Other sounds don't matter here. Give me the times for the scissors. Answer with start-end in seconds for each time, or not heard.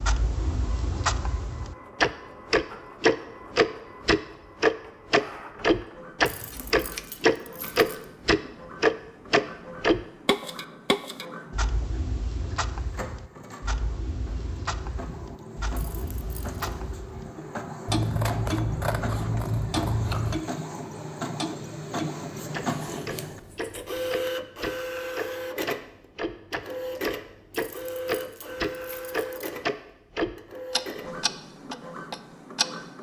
6.3-7.0, 17.9-20.4, 22.8-23.9.